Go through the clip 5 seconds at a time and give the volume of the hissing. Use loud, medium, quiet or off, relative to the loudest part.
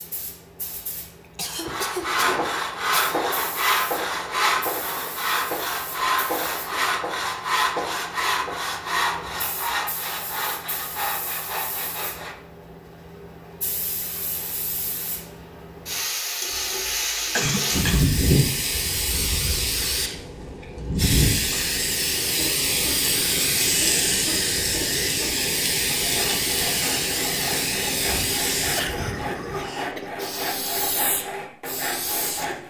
quiet, quiet, quiet, loud, loud, loud, medium.